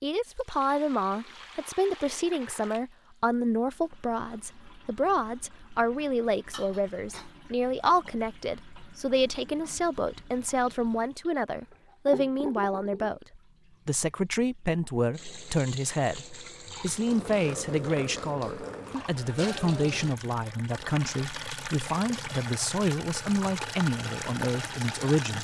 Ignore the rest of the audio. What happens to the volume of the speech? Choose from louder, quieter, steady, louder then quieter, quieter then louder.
steady.